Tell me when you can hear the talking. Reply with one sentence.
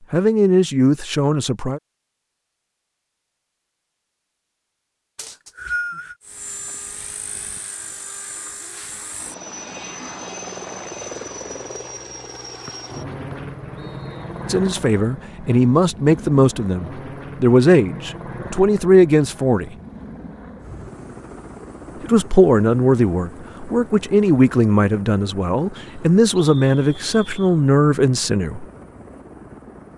The talking can be heard from 0.1 to 1.8 s, from 14.4 to 19.7 s and from 22.0 to 28.6 s.